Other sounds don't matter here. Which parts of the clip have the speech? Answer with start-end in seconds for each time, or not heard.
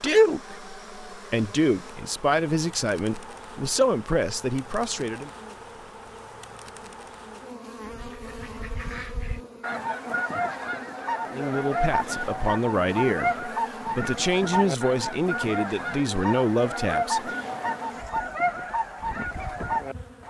0.0-5.3, 11.3-17.3.